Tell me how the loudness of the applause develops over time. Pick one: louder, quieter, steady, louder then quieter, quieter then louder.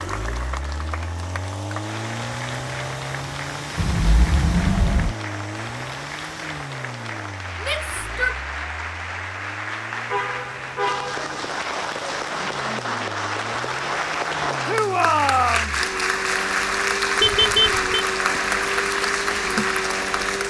louder.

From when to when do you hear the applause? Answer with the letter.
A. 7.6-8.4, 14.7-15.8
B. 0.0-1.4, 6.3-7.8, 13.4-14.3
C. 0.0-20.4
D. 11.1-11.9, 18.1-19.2
C.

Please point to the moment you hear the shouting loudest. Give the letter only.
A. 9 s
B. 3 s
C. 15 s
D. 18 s
C.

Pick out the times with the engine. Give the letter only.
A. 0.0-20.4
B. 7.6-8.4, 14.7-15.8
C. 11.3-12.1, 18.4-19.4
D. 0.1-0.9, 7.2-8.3
A.